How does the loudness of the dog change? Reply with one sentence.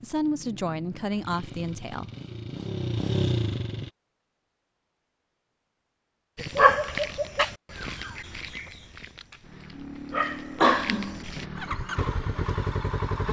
The volume of the dog goes down, then up.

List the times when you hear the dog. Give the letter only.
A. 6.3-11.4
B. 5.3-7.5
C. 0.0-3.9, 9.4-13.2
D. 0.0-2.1
A.